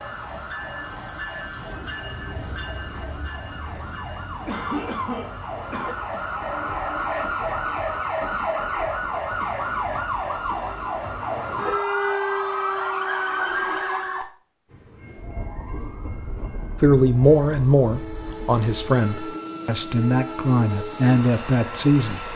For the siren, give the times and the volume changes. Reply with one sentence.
The siren can be heard from 0.0 to 22.3 s, getting louder then quieter.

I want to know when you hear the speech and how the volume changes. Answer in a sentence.
The speech can be heard from 16.8 to 22.3 s, getting quieter then louder.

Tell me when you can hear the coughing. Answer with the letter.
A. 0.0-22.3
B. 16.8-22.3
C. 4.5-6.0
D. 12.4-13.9
C.